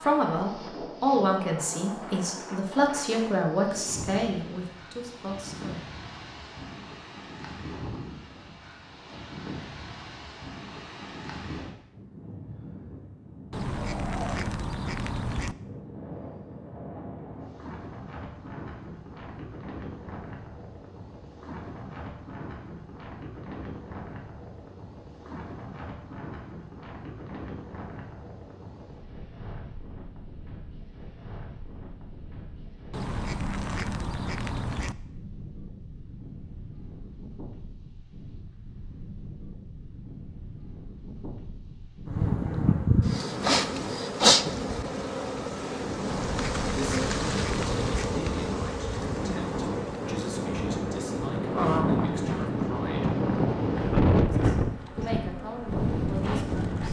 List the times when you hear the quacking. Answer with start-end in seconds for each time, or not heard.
13.5-15.6, 32.9-35.0, 46.0-48.1.